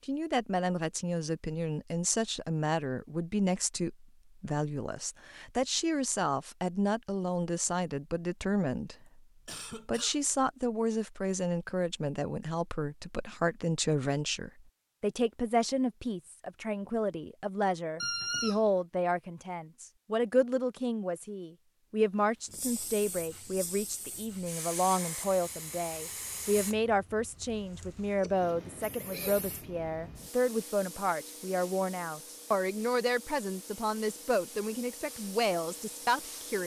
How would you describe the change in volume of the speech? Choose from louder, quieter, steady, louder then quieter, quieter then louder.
steady.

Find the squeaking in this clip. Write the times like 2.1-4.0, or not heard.
18.0-18.6.